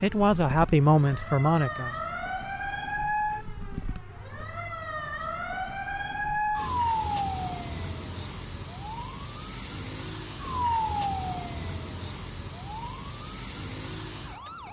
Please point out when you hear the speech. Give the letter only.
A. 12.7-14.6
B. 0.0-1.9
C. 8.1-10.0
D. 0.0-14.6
B.